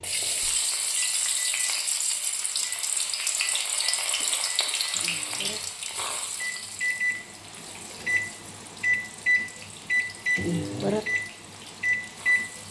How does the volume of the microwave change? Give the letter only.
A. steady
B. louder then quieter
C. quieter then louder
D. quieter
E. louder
E.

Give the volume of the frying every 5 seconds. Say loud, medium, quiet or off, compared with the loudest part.
loud, medium, quiet.